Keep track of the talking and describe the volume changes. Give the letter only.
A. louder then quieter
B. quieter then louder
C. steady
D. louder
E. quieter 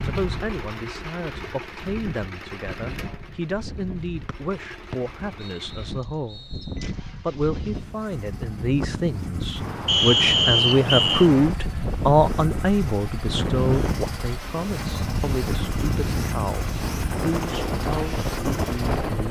A.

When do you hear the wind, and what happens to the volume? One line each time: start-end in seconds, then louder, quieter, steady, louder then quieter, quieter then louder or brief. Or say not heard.
0.0-19.2 louder.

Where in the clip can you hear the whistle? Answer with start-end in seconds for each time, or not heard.
4.2-6.8, 9.8-11.3.